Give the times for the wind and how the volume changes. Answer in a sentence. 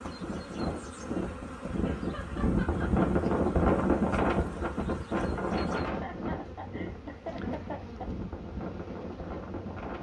You can hear the wind from 0.0 to 9.9 s, getting louder then quieter.